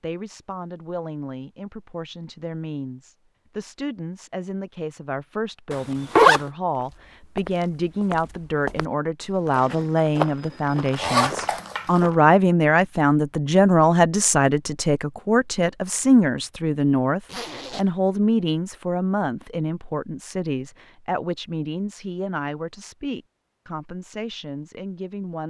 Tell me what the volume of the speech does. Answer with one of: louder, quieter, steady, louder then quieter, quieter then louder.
louder then quieter.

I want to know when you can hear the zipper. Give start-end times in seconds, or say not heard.
5.7-6.4, 10.9-12.0, 17.2-17.9.